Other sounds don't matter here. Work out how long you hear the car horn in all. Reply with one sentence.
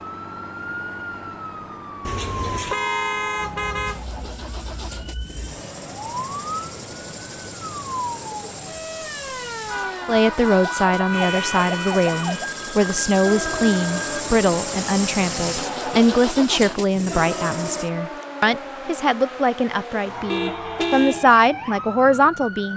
The car horn can be heard for 6 seconds in total.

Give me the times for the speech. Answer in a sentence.
You can hear the speech from 10.1 to 22.7 s.